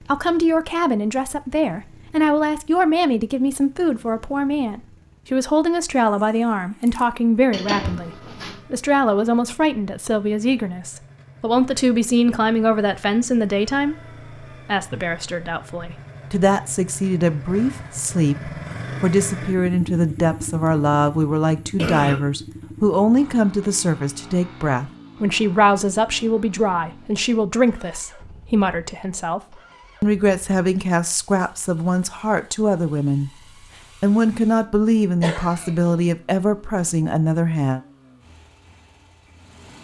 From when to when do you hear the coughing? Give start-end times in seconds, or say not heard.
7.5-8.6, 21.8-22.2, 35.2-36.0.